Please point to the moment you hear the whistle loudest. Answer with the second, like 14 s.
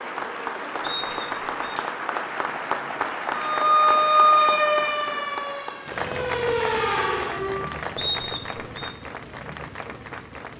8 s.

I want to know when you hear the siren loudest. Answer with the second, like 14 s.
4 s.